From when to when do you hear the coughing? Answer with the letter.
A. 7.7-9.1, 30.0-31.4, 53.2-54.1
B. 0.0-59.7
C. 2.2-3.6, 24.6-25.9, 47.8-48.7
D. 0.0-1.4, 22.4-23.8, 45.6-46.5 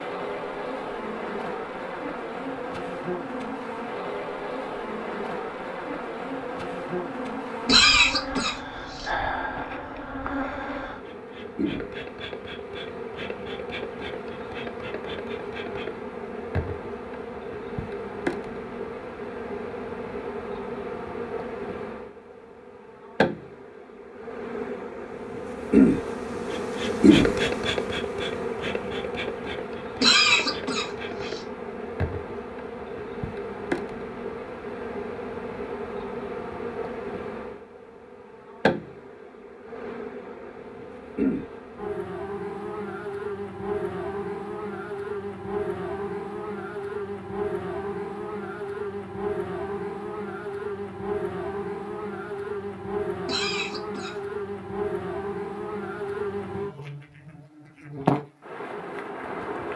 A.